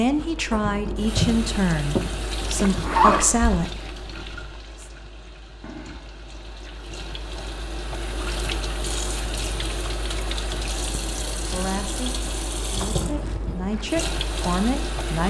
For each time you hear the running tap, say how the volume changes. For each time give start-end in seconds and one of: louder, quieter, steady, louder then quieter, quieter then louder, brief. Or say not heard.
0.0-15.2 quieter then louder.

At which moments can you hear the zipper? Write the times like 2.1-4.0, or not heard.
2.8-3.6.